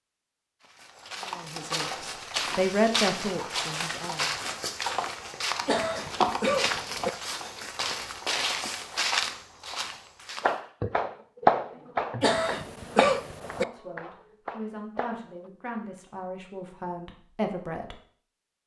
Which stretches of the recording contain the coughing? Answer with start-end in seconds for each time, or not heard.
5.7-7.1, 12.2-13.7.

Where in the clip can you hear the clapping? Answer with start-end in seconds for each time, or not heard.
10.4-15.5.